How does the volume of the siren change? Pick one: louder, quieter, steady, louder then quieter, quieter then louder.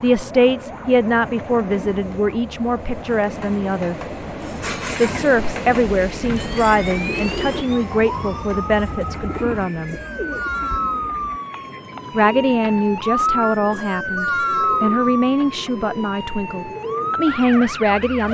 louder.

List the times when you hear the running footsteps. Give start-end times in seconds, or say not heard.
not heard.